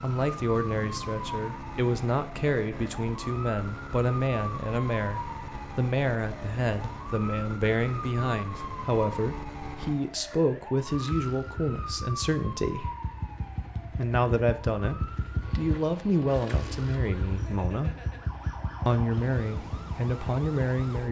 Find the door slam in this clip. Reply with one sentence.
The door slam can't be heard in this clip.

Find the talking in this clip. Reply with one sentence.
The talking can be heard from 0.0 to 12.9 s, from 13.9 to 17.9 s and from 18.9 to 21.0 s.